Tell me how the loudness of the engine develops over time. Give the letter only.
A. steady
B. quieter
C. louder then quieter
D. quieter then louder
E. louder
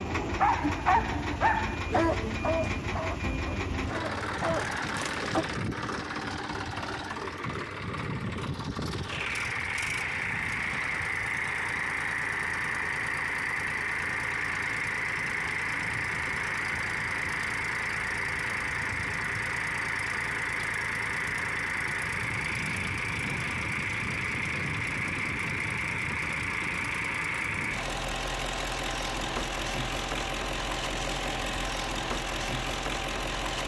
A.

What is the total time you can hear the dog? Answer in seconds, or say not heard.
5 s.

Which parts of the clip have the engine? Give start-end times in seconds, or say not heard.
0.0-33.6.